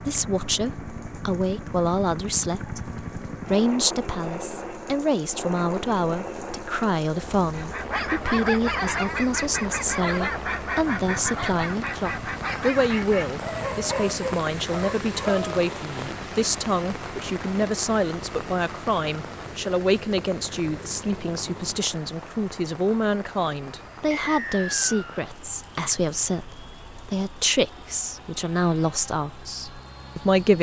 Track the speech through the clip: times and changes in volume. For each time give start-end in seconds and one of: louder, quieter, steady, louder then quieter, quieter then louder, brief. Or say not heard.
0.0-30.5 steady.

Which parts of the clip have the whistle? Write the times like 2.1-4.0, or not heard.
24.1-25.2.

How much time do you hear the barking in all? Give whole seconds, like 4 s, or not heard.
8 s.